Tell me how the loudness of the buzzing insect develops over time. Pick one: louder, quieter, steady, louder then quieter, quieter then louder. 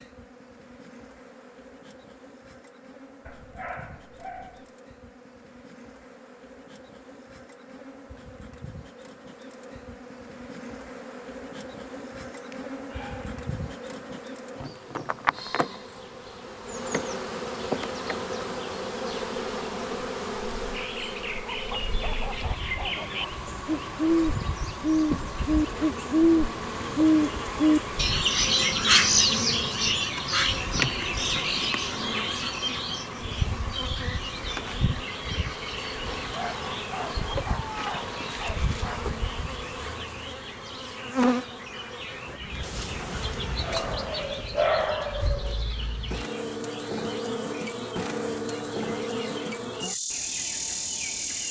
louder.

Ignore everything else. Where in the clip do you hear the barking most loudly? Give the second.
45 s.